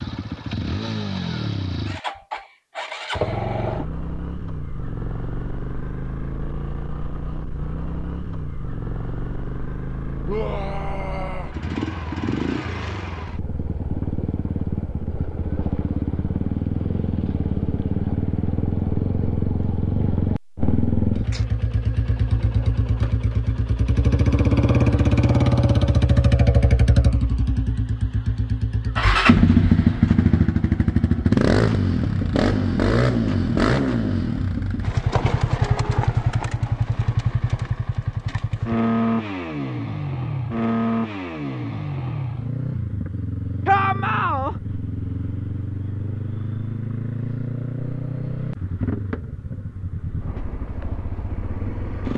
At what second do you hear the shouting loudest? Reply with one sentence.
The volume of the shouting peaks at 44 seconds.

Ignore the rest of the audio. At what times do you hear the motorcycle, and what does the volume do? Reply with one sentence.
The motorcycle can be heard from 0.0 to 52.1 s, getting louder then quieter.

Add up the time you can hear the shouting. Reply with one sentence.
You can hear the shouting for 2 seconds altogether.